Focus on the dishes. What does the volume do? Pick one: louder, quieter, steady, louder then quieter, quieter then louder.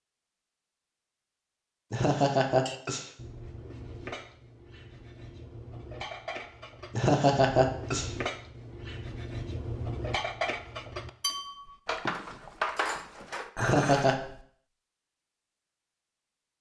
louder.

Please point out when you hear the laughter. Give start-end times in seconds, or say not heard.
1.9-3.0, 7.0-8.1, 13.6-14.2.